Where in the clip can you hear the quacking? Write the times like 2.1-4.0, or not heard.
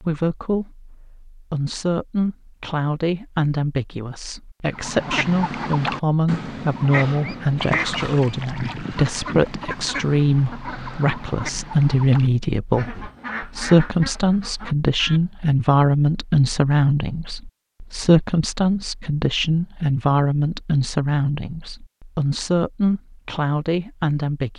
4.7-15.2.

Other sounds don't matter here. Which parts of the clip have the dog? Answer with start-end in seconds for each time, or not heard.
not heard.